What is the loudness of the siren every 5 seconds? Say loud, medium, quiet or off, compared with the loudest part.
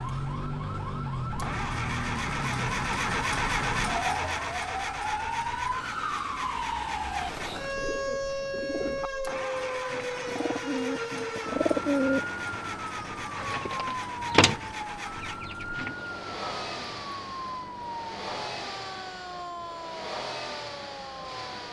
loud, loud, loud, medium, medium.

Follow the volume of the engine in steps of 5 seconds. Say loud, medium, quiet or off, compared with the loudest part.
loud, medium, medium, medium, medium.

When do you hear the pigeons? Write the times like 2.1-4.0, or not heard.
7.4-16.1.